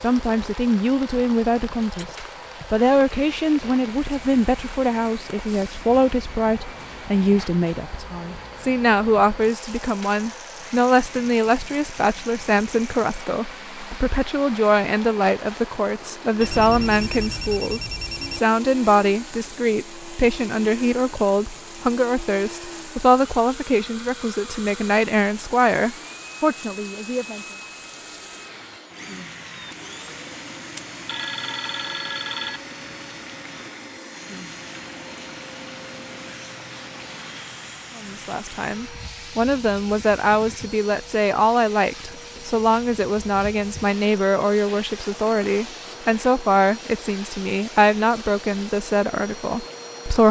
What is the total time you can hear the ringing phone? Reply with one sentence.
The ringing phone can be heard for 4 seconds in total.